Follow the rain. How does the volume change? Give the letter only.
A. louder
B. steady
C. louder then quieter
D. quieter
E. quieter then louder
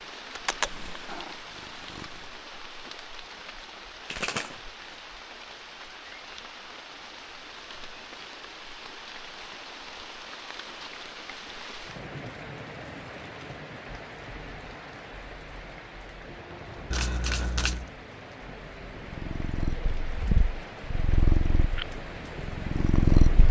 B.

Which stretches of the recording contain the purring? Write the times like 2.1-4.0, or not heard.
0.3-2.4, 19.0-23.4.